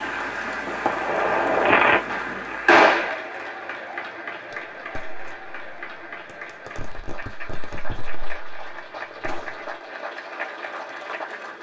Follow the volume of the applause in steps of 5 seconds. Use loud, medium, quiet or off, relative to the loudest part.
loud, medium, loud.